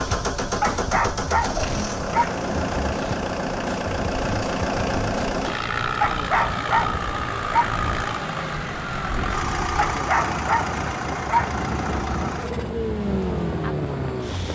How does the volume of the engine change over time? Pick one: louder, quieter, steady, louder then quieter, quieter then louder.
steady.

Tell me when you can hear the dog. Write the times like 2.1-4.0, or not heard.
0.6-2.4, 6.0-7.8, 9.8-11.6.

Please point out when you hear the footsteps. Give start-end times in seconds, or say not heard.
not heard.